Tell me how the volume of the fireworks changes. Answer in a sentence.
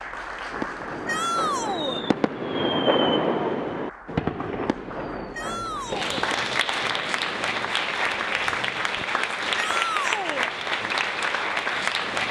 The volume of the fireworks goes up, then down.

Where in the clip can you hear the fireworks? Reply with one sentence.
You can hear the fireworks from 0.5 to 9.1 s.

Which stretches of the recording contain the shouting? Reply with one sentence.
You can hear the shouting from 1.1 to 2.0 s, from 5.3 to 6.1 s and from 9.6 to 10.5 s.